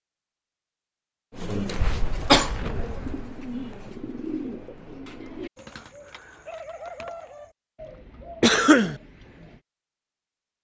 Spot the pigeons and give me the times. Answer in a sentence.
The pigeons can be heard from 1.3 to 9.6 s.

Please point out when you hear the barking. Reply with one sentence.
The barking can't be heard in this clip.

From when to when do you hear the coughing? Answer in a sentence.
You can hear the coughing from 1.8 to 2.5 s and from 8.4 to 8.9 s.